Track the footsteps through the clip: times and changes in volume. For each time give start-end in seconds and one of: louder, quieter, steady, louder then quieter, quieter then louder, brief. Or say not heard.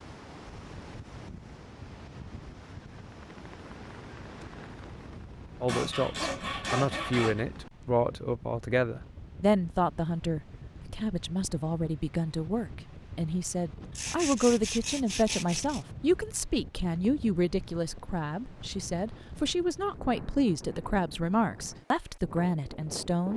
not heard.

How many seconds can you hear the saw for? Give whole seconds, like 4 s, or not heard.
4 s.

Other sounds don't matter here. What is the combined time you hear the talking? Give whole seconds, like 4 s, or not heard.
18 s.